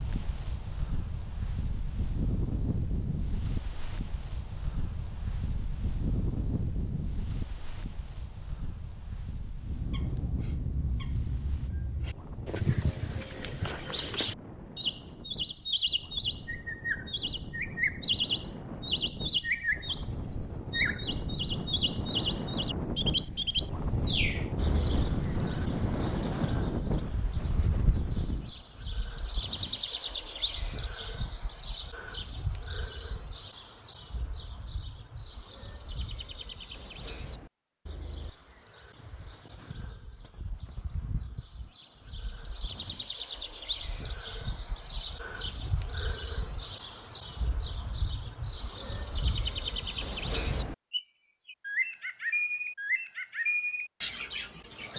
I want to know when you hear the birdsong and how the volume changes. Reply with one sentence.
You can hear the birdsong from 9.6 to 54.9 s, getting quieter then louder.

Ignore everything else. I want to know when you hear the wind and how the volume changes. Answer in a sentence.
You can hear the wind from 0.0 to 28.6 s, getting quieter then louder.